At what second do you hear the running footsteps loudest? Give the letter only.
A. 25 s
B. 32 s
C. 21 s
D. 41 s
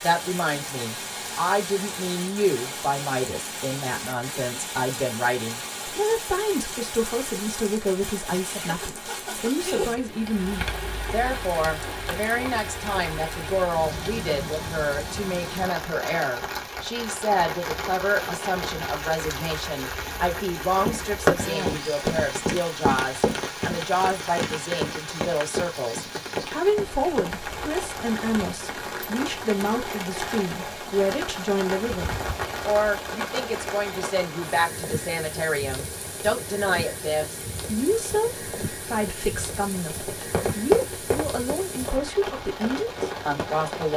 C.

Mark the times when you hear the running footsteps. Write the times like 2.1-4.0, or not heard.
20.9-27.3, 40.0-43.9.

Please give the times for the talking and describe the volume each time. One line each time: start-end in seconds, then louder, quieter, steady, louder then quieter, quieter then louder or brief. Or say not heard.
0.0-43.9 steady.